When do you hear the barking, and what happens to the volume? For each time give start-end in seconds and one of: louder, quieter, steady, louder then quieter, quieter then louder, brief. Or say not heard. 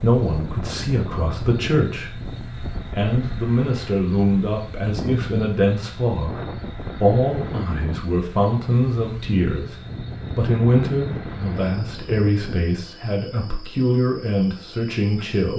not heard.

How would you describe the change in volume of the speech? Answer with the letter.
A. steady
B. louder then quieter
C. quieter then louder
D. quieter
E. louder
A.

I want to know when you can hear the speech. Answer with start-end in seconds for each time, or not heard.
0.0-9.8, 10.3-15.5.